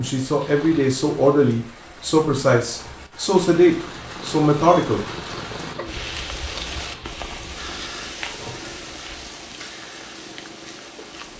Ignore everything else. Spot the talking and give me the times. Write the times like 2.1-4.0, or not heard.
0.0-5.0.